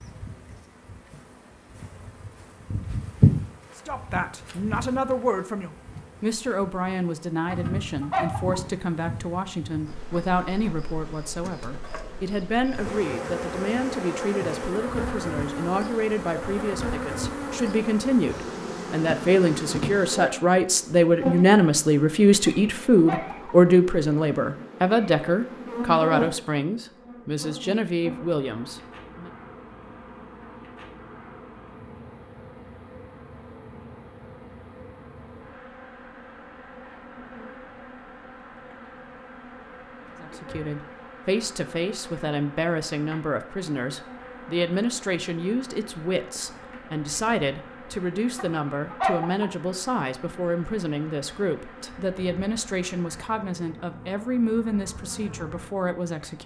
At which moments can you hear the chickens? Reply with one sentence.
The chickens can be heard from 7.5 to 8.6 s, from 22.4 to 23.6 s and from 48.4 to 49.5 s.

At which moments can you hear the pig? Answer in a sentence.
You can't hear the pig here.